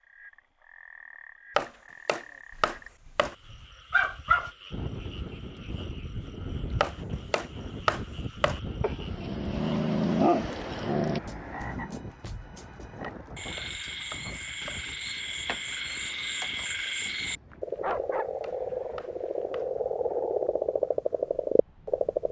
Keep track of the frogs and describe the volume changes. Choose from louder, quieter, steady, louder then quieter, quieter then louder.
louder.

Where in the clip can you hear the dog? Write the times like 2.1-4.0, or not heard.
3.9-4.5, 8.8-11.2, 17.5-19.4.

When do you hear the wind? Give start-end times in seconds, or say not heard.
4.7-22.2.